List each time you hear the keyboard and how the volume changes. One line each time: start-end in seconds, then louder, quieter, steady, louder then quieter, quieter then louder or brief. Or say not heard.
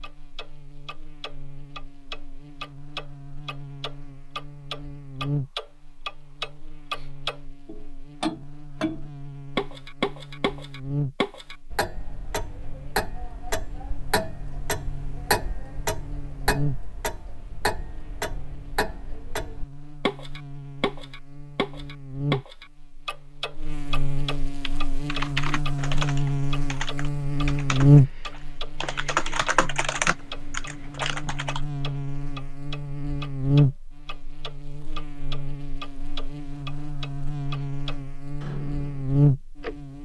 24.6-31.6 quieter then louder.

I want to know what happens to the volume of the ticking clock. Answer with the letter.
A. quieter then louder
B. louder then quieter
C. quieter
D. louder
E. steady
C.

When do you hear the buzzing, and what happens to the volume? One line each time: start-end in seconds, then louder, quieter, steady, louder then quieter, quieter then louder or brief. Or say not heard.
0.0-39.9 louder.